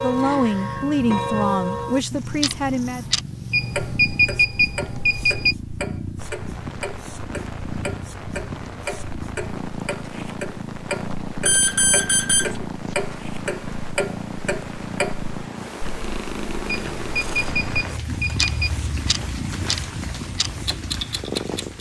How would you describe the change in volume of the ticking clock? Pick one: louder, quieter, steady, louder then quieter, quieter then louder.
quieter then louder.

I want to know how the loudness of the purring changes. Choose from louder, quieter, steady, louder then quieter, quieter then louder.
steady.